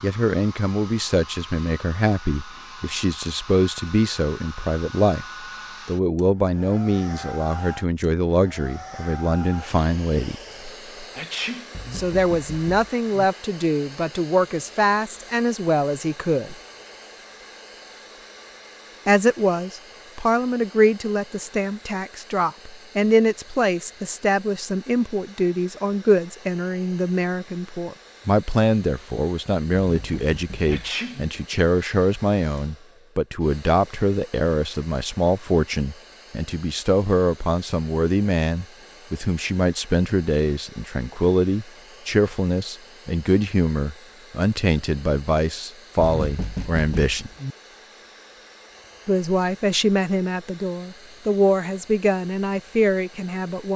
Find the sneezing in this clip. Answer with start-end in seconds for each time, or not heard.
11.2-11.7, 30.6-31.2.